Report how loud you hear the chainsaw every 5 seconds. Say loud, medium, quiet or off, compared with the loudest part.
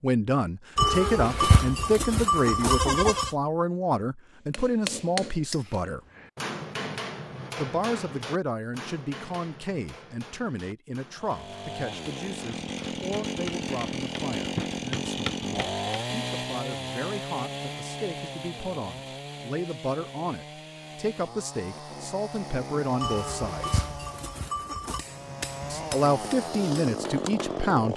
off, off, loud, loud, medium, loud.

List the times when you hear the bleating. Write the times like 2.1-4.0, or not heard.
0.8-3.3, 23.0-25.1.